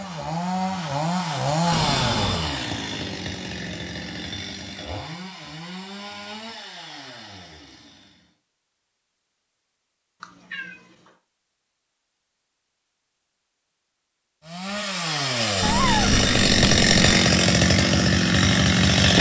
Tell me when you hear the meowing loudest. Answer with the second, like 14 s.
16 s.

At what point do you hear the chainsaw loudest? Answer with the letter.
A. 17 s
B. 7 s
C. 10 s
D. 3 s
A.